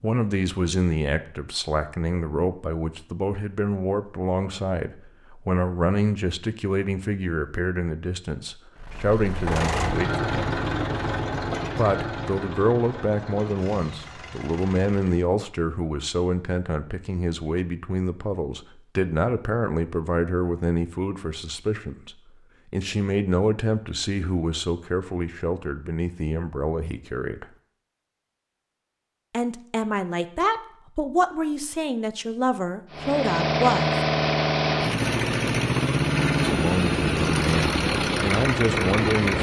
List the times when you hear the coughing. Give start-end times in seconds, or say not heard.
not heard.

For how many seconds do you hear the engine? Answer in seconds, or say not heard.
13 s.